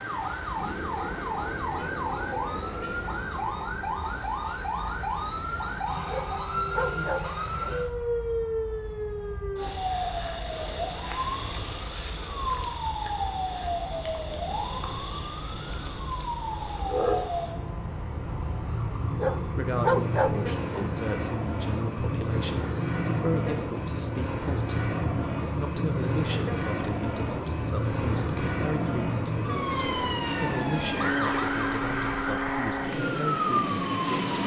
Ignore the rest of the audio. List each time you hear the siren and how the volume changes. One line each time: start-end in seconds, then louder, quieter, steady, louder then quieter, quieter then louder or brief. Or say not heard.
0.0-34.4 steady.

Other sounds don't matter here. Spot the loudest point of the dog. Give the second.
20 s.